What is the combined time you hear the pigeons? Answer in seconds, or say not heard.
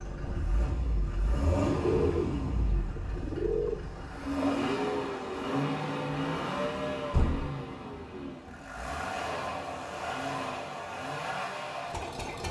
2 s.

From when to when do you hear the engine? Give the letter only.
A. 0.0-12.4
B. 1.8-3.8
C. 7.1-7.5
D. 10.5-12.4
A.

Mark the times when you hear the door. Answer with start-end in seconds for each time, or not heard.
7.1-7.5.